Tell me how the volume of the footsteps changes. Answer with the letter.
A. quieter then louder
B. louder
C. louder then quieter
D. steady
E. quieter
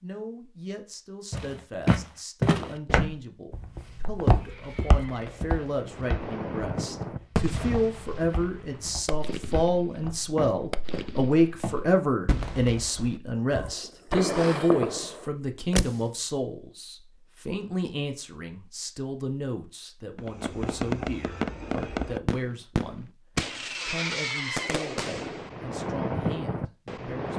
A.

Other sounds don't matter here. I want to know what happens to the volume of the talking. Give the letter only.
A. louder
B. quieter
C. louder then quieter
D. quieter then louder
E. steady
C.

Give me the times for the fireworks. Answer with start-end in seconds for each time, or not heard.
4.2-16.1, 20.1-27.3.